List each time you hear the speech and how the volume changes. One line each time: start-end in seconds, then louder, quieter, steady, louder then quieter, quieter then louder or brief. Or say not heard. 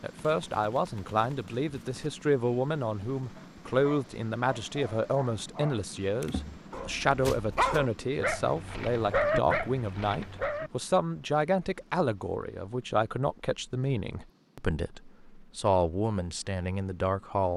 0.0-17.5 steady.